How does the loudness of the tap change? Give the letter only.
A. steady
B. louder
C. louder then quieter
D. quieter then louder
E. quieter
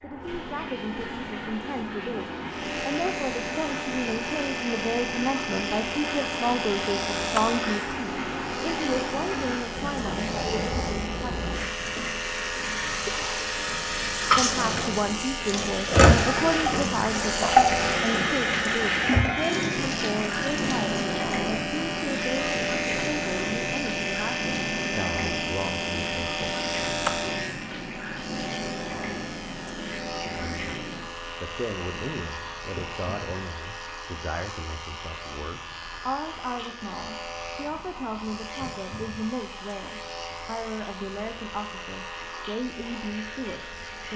C.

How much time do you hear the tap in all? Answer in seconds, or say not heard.
44 s.